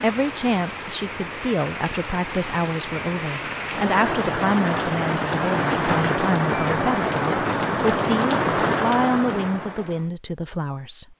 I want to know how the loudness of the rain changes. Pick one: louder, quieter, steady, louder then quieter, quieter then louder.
louder.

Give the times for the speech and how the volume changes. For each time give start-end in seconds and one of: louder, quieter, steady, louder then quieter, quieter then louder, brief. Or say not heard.
0.0-11.1 steady.